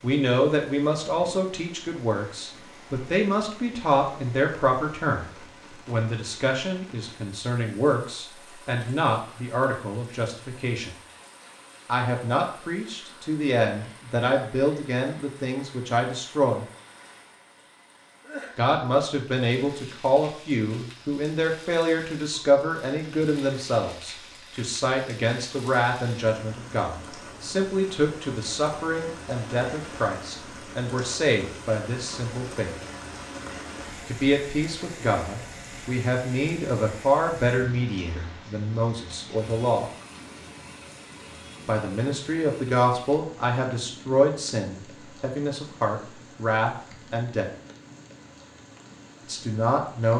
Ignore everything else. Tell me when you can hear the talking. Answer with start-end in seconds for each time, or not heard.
0.0-10.9, 11.8-16.6, 18.6-32.7, 34.0-39.9, 41.6-47.5, 49.2-50.1.